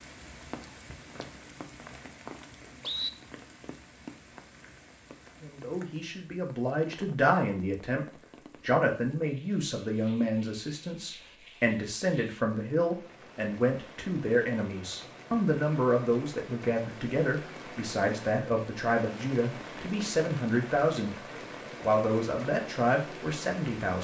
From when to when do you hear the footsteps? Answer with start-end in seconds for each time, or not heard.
not heard.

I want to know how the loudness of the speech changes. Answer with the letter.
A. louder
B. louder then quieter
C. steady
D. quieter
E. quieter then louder
C.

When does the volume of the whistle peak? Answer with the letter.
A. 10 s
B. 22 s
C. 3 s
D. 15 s
C.